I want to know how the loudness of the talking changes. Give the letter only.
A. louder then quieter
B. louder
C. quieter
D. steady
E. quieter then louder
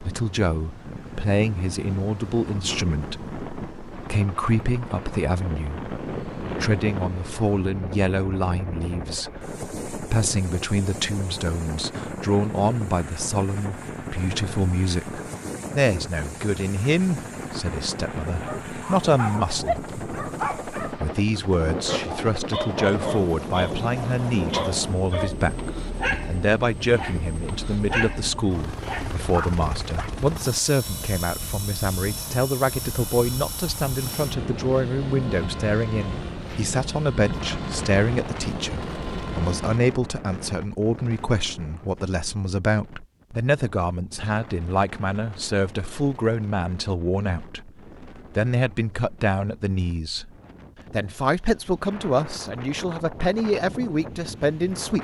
D.